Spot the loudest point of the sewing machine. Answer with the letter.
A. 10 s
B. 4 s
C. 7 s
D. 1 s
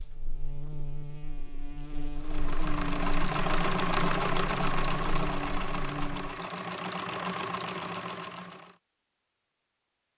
B.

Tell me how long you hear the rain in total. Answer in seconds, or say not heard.
not heard.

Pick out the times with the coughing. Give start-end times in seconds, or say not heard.
not heard.